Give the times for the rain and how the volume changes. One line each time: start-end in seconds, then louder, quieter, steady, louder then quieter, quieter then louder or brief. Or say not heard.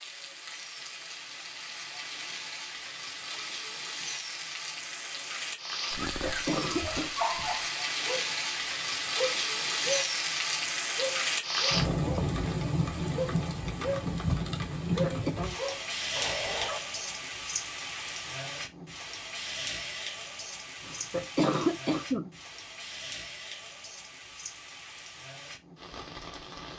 0.0-26.7 louder then quieter.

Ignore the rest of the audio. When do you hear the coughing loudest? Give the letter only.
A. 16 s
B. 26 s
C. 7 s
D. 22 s
D.